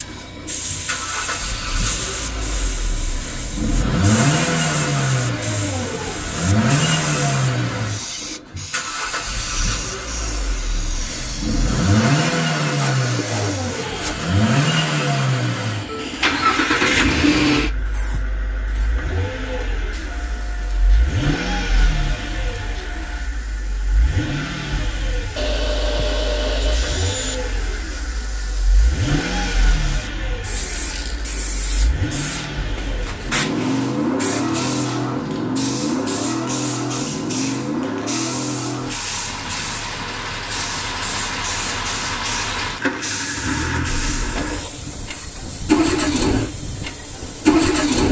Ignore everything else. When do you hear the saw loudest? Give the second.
26 s.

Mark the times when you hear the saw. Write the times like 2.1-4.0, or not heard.
12.7-14.2, 25.4-27.4.